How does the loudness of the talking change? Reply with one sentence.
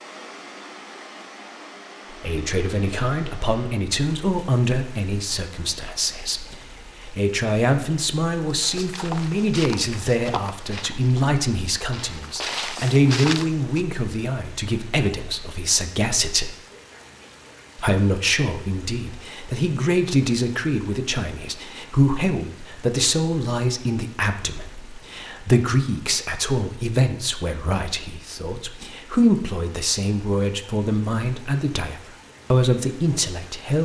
The volume of the talking stays about the same.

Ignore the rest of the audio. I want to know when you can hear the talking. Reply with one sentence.
You can hear the talking from 2.2 to 16.6 s and from 17.8 to 33.8 s.